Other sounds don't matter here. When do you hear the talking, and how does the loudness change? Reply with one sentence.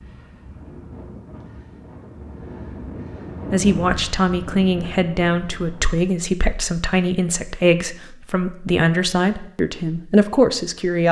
The talking can be heard from 3.5 to 11.0 s, at a steady volume.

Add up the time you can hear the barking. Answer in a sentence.
You can't hear the barking here.